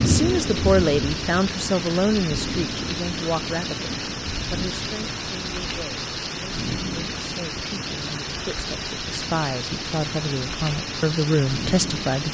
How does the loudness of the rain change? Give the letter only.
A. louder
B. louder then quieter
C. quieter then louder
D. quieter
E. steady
E.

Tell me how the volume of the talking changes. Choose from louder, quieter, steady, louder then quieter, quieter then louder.
quieter then louder.